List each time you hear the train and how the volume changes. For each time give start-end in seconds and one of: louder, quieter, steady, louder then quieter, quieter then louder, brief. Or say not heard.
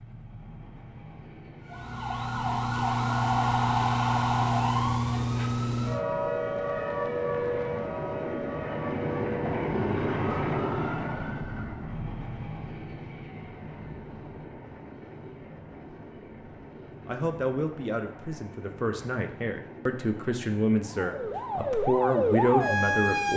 0.0-23.3 louder then quieter.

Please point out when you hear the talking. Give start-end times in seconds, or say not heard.
17.1-23.3.